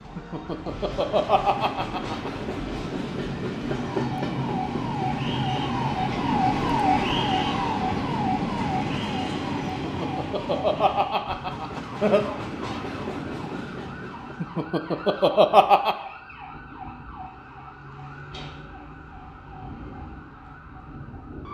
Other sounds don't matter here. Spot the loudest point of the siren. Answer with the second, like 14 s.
7 s.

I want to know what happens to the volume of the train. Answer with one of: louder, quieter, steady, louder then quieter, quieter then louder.
louder then quieter.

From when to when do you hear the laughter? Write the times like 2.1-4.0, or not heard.
0.1-2.3, 9.7-12.2, 14.4-15.9.